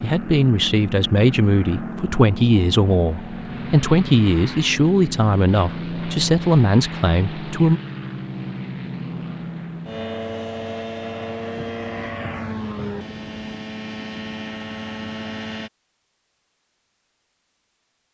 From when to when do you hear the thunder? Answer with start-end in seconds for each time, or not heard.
11.6-13.6.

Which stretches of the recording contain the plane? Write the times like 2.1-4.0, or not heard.
0.0-15.7.